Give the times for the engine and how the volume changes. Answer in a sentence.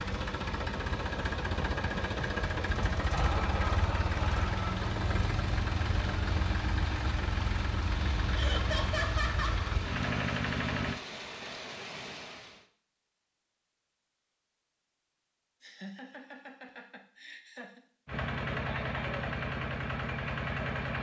You can hear the engine from 0.0 to 11.0 s, at a steady volume; and briefly from 18.1 to 20.9 s.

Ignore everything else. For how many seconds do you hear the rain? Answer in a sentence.
The rain can be heard for 13 seconds in total.